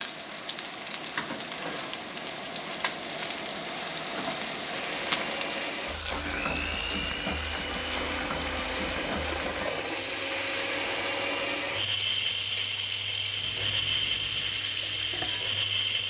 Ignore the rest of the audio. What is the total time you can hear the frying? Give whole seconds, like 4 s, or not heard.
16 s.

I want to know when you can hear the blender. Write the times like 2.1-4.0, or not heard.
4.7-16.0.